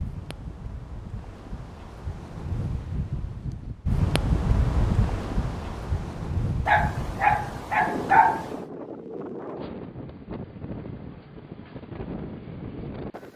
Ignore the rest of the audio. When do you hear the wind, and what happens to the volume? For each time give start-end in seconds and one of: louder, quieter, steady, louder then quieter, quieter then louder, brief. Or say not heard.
0.0-13.3 louder then quieter.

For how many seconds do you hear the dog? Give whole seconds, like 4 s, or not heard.
2 s.